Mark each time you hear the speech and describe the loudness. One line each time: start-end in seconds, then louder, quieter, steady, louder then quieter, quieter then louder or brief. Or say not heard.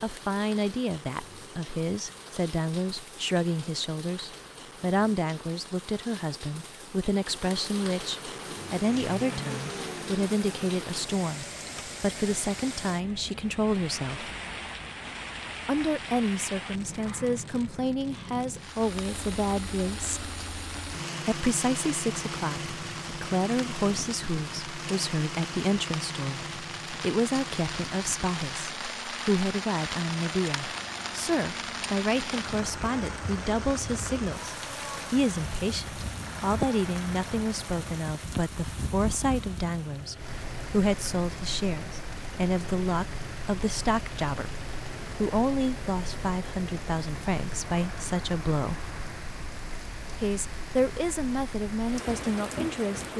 0.0-14.3 steady
15.7-20.3 steady
21.2-48.8 steady
50.2-53.1 brief.